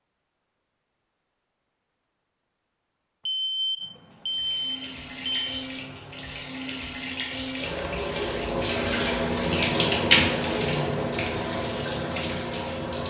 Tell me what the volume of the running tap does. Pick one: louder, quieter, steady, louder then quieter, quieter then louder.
louder then quieter.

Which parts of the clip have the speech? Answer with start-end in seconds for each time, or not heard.
not heard.